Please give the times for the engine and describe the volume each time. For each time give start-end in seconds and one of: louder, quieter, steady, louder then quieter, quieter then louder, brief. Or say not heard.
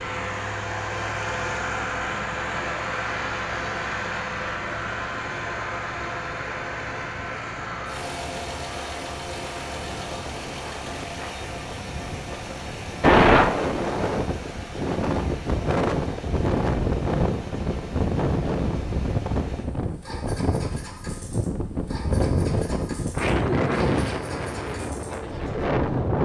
0.0-26.1 quieter.